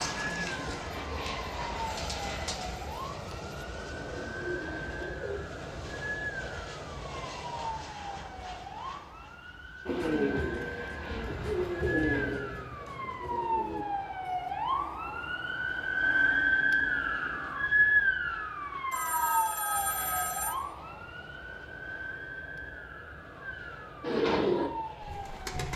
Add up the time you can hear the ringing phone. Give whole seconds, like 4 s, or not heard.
2 s.